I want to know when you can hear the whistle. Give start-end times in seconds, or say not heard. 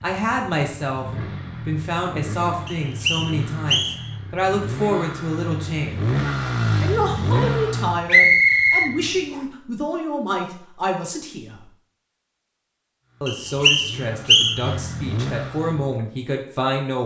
2.6-4.1, 8.1-9.4, 13.2-14.7.